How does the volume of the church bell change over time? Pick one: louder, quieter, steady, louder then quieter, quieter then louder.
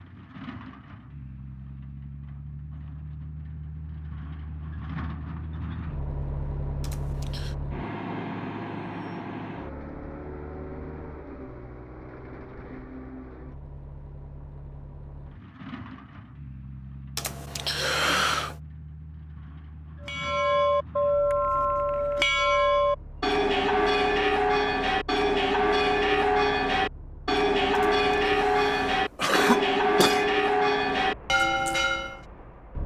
steady.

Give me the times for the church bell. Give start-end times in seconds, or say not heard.
20.0-32.2.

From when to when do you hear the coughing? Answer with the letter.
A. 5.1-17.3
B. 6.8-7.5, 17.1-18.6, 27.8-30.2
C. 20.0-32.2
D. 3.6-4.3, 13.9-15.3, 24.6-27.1
B.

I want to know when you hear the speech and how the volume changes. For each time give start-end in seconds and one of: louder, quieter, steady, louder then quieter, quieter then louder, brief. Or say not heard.
not heard.